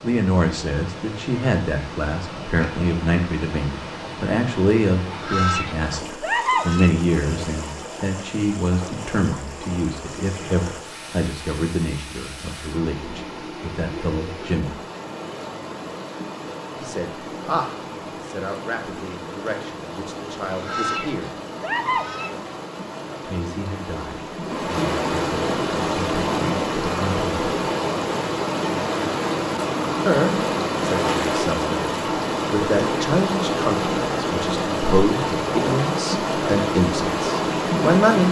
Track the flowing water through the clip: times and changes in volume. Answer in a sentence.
You can hear the flowing water from 0.0 to 38.2 s, getting louder.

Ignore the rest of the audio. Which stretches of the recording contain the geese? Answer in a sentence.
You can hear the geese from 5.1 to 7.8 s and from 20.5 to 22.4 s.